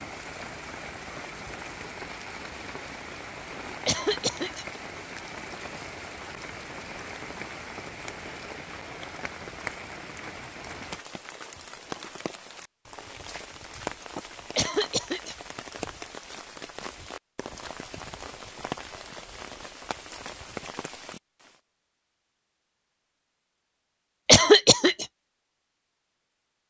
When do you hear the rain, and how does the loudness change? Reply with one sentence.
You can hear the rain from 0.0 to 21.6 s, at a steady volume.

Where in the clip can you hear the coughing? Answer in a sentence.
You can hear the coughing from 3.9 to 4.7 s, from 14.6 to 15.3 s and from 24.2 to 25.1 s.